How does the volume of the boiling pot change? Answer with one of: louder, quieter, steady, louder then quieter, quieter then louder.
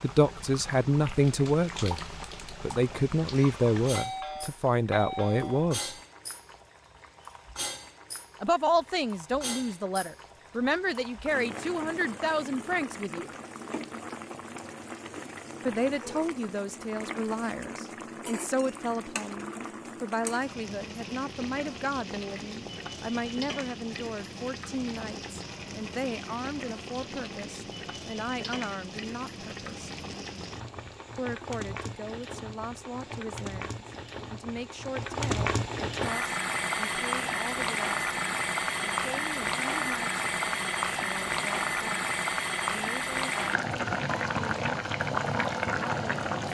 louder.